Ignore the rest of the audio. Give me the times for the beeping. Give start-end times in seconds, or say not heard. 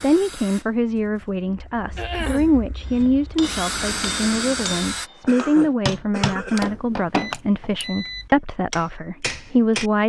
6.5-8.3.